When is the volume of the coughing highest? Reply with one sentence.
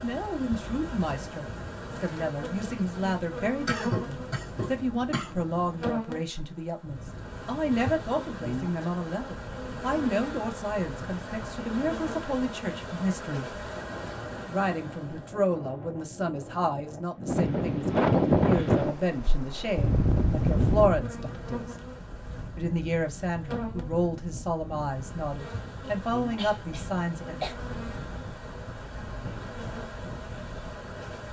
The volume of the coughing peaks at 4 seconds.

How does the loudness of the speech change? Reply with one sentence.
The loudness of the speech stays about the same.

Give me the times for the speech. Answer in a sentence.
You can hear the speech from 0.0 to 13.5 s, from 14.4 to 21.8 s and from 22.6 to 27.5 s.